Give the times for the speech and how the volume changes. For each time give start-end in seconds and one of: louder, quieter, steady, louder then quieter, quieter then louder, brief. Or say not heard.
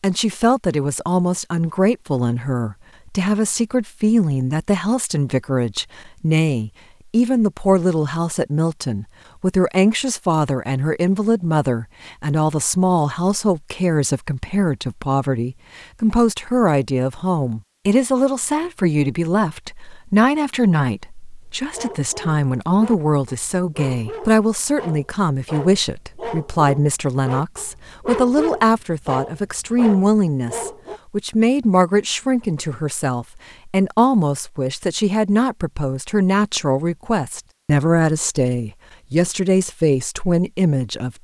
0.0-41.1 steady.